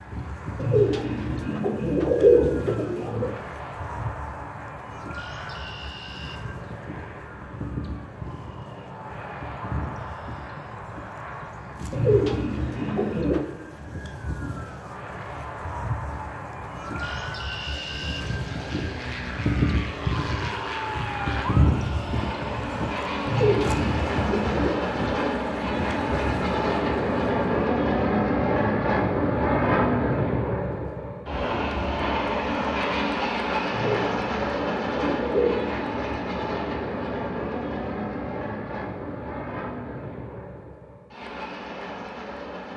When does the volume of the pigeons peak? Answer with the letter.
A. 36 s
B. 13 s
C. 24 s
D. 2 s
D.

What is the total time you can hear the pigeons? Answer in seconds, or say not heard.
8 s.